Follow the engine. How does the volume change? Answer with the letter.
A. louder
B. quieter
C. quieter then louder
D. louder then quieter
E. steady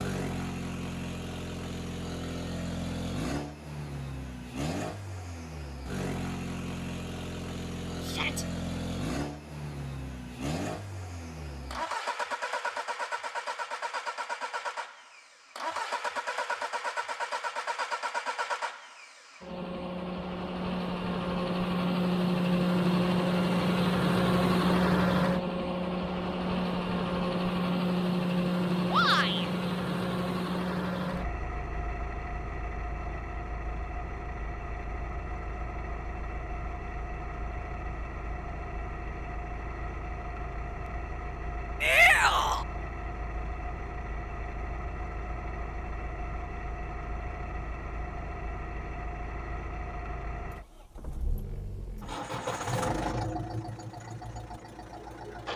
D.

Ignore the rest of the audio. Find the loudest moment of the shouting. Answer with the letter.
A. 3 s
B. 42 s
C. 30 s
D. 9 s
B.